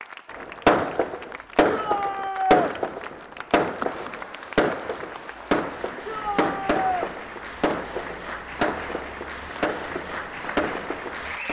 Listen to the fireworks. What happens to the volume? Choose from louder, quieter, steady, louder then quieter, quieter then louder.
quieter.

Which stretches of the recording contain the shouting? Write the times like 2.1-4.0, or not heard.
1.6-2.7, 6.0-7.1.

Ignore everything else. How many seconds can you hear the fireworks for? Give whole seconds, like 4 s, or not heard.
11 s.